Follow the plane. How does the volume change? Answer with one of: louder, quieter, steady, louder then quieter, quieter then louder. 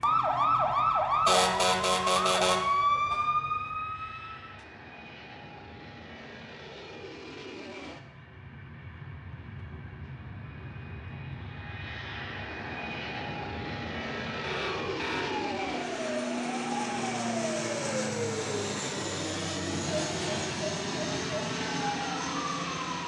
louder.